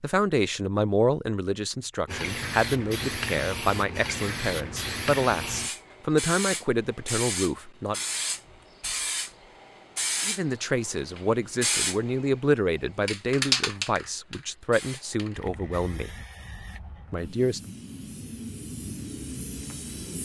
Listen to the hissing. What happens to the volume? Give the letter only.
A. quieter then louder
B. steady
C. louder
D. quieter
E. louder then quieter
D.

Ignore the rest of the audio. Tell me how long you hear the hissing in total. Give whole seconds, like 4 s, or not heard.
18 s.